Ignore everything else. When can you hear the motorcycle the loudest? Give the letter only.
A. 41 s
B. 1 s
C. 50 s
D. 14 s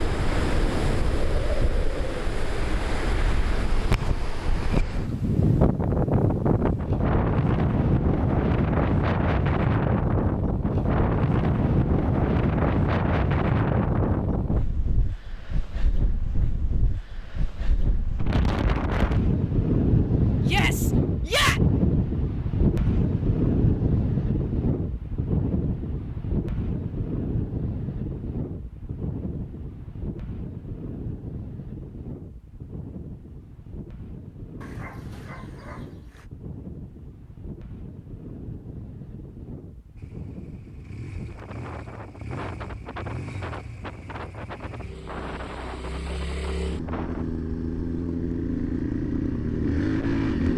C.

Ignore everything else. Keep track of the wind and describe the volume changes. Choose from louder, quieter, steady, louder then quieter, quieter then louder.
quieter.